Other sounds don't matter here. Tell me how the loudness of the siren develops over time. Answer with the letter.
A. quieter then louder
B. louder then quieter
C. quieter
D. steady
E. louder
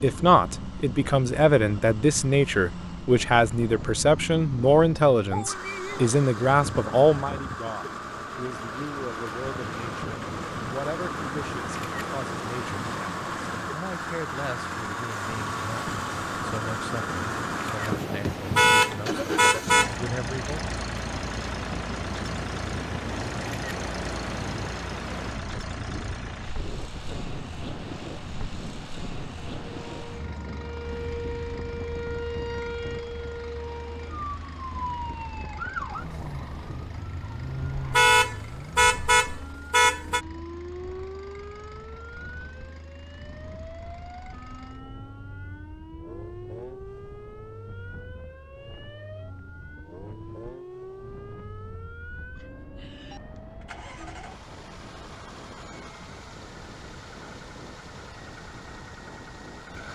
C.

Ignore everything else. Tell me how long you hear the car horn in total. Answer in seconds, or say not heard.
4 s.